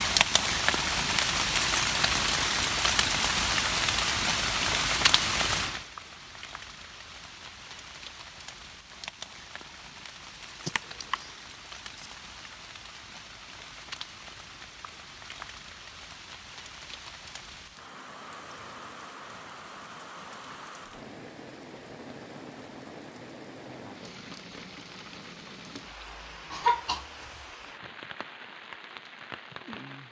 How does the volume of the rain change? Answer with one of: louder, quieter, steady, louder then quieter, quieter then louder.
quieter.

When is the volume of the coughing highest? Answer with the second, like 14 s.
27 s.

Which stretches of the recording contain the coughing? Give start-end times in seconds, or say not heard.
10.7-11.2, 26.5-27.4.